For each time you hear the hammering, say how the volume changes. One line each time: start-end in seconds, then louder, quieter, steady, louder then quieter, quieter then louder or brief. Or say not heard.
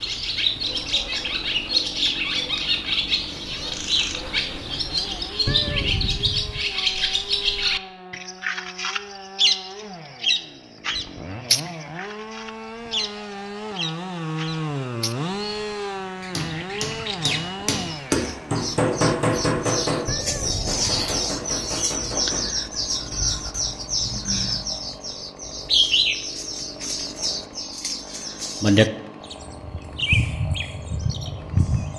15.9-22.4 louder then quieter.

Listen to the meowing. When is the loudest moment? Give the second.
6 s.